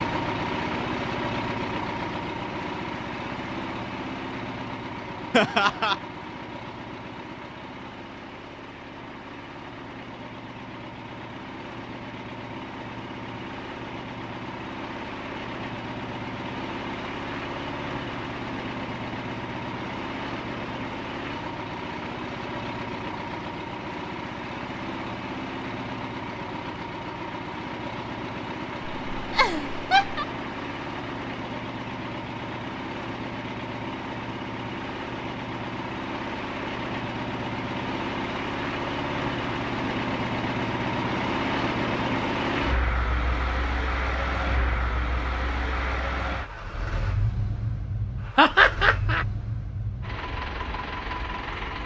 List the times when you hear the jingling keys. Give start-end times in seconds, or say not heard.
not heard.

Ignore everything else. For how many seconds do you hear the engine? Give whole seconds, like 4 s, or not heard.
52 s.